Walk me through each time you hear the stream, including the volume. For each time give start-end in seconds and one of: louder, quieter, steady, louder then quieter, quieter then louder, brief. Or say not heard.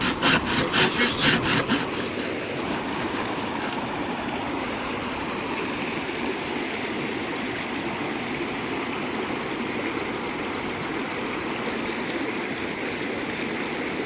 0.0-14.0 steady.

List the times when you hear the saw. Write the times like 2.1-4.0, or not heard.
0.0-3.8.